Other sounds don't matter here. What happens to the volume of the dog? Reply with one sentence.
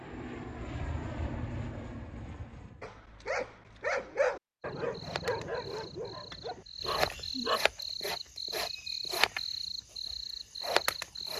The volume of the dog goes down.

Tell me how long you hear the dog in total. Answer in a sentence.
The dog can be heard for 5 seconds in total.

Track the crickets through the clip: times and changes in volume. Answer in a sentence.
You can hear the crickets from 4.7 to 11.3 s, getting louder.